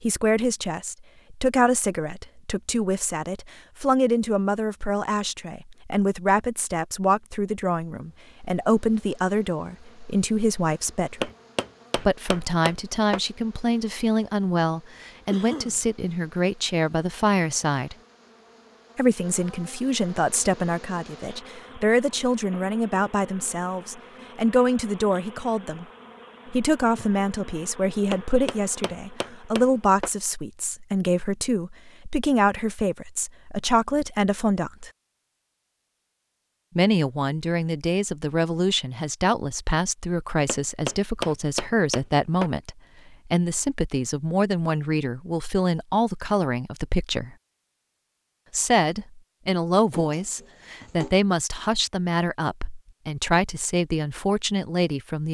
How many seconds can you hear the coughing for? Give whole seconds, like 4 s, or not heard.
2 s.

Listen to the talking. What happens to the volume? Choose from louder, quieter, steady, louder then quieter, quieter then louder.
steady.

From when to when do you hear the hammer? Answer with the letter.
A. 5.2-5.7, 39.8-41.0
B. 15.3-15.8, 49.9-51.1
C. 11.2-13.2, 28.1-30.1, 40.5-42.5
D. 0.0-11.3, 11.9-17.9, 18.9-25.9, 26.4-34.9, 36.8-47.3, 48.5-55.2
C.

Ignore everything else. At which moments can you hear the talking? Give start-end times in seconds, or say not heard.
0.0-11.3, 11.9-17.9, 18.9-25.9, 26.4-34.9, 36.8-47.3, 48.5-55.2.